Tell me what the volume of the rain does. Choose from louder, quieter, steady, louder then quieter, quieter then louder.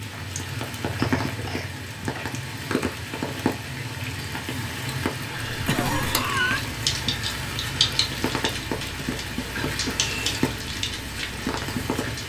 steady.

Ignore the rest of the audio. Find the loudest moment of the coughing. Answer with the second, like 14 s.
6 s.